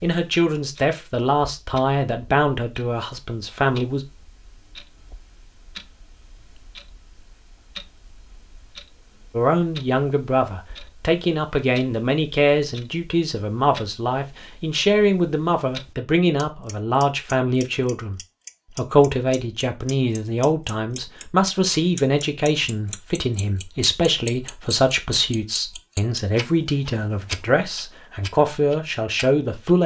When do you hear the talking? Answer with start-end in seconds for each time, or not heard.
0.0-4.0, 9.3-29.8.